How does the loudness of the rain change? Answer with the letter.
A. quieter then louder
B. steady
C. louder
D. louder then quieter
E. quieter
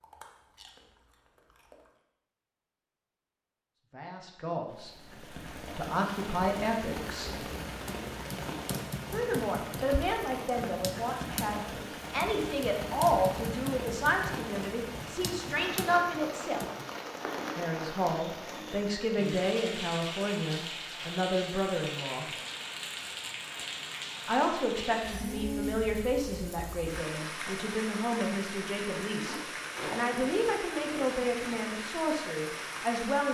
B.